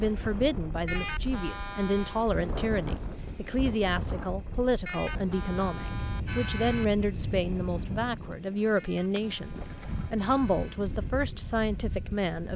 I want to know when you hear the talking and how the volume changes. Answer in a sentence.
You can hear the talking from 0.0 to 12.5 s, at a steady volume.